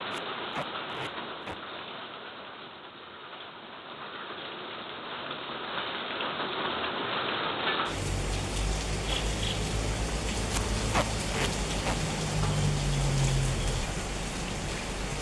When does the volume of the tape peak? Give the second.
11 s.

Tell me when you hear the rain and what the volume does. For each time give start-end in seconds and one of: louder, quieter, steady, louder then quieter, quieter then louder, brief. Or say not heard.
0.0-15.1 louder.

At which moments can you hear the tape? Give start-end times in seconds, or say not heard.
0.1-1.6, 10.5-11.9.